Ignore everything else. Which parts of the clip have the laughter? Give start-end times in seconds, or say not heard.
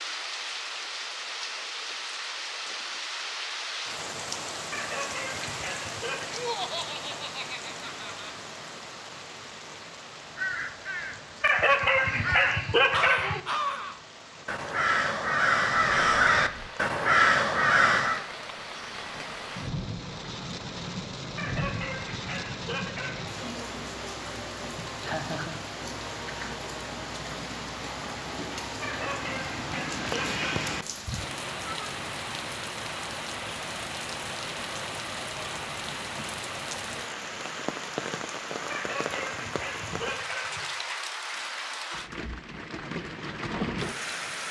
6.3-8.3, 24.8-25.6.